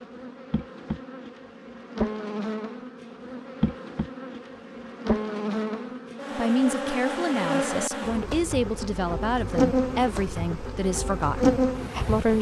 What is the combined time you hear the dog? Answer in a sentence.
You can't hear the dog here.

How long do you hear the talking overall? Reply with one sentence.
You can hear the talking for 6 seconds altogether.